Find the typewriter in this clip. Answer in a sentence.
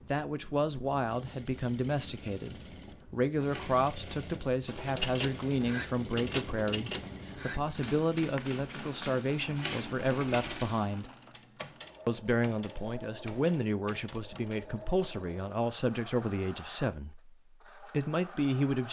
You can hear the typewriter from 4.7 to 14.6 s.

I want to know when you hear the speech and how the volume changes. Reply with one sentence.
The speech can be heard from 0.1 to 11.1 s, at a steady volume; and from 12.1 to 18.8 s, at a steady volume.